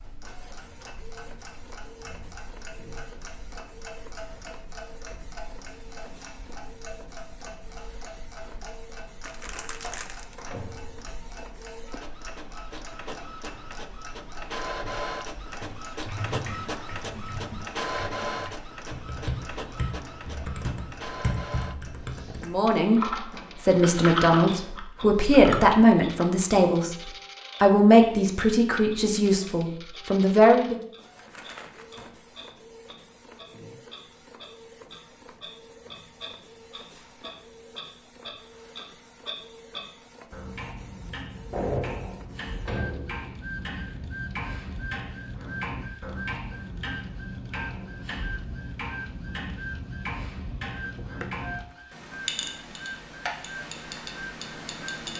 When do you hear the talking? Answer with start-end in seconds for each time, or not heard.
22.4-30.8.